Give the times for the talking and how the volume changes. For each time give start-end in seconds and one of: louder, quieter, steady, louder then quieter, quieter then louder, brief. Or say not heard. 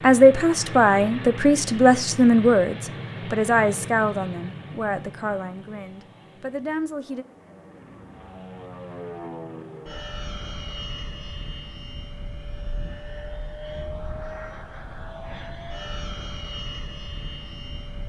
0.0-7.2 quieter.